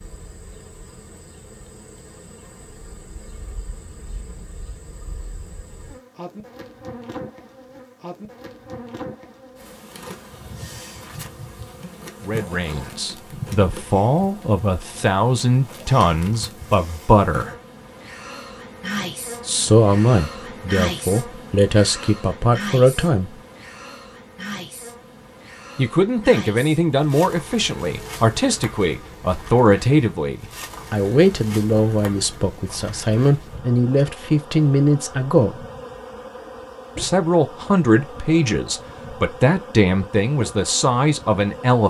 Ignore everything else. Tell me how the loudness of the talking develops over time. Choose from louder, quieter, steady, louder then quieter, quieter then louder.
steady.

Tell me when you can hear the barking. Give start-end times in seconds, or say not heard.
not heard.